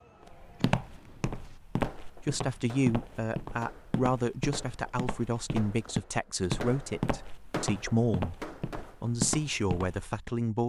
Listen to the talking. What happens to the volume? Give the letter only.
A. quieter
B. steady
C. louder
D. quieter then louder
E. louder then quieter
B.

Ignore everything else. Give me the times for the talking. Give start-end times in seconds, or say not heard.
2.0-10.6.